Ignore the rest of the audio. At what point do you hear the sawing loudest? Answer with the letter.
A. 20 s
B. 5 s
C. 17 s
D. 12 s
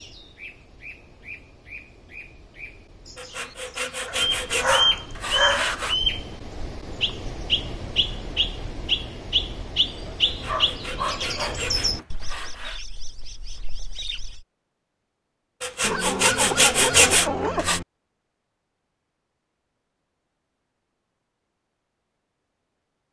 C.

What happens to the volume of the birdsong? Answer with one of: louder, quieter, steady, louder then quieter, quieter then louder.
louder then quieter.